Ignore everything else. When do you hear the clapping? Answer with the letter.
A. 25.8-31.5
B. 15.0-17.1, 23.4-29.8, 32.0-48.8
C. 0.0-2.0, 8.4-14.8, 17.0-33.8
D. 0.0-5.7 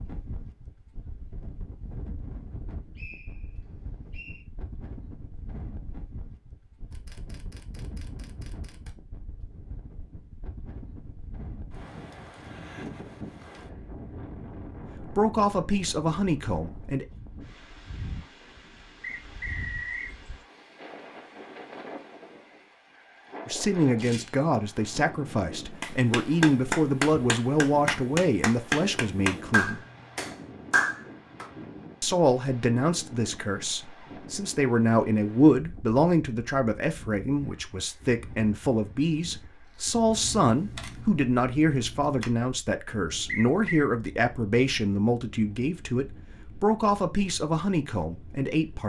A.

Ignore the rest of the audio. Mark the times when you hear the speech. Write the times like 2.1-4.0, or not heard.
15.0-17.1, 23.4-29.8, 32.0-48.8.